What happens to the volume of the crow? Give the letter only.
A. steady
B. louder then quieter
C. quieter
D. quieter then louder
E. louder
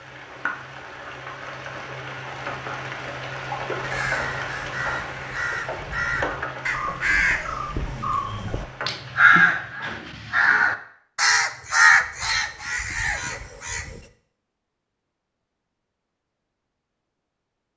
E.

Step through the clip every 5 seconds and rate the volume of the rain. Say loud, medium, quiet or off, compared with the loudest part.
loud, loud, off, off.